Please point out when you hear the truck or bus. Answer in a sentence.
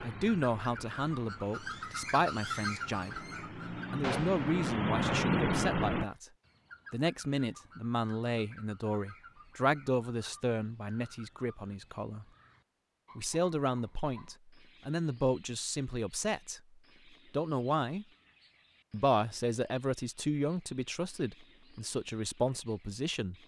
You can hear the truck or bus from 0.0 to 6.0 s.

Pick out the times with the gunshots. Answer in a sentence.
The gunshots can be heard from 4.0 to 4.5 s.